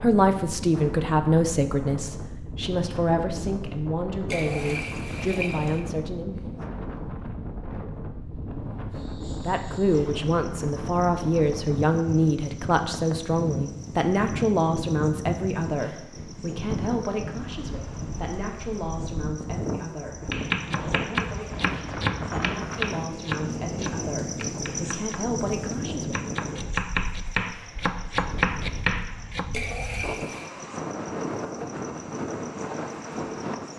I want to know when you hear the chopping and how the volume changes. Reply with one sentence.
You can hear the chopping from 20.3 to 29.5 s, getting quieter then louder.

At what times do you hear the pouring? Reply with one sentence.
You can hear the pouring from 4.3 to 5.8 s and from 29.5 to 30.5 s.